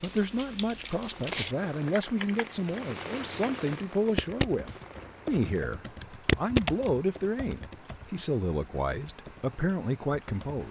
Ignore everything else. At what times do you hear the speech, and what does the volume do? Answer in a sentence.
You can hear the speech from 0.0 to 10.6 s, at a steady volume.